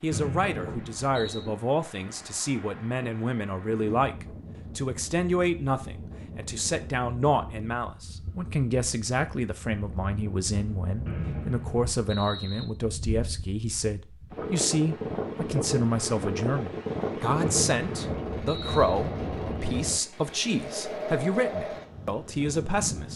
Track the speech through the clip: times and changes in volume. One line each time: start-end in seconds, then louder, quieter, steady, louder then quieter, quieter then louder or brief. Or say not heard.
0.0-23.1 steady.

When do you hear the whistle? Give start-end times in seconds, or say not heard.
0.1-1.5, 11.1-12.7, 17.4-19.0.